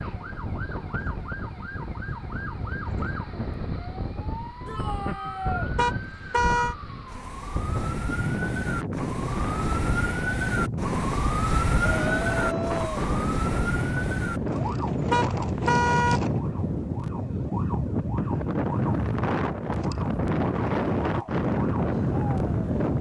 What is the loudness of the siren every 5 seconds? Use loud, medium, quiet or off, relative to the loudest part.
medium, medium, loud, medium, medium.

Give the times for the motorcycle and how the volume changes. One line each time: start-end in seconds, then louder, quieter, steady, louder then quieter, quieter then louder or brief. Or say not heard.
not heard.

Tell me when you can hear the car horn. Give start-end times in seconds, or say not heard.
5.8-6.8, 15.1-16.2.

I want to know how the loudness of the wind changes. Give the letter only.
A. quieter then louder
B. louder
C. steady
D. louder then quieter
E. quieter
B.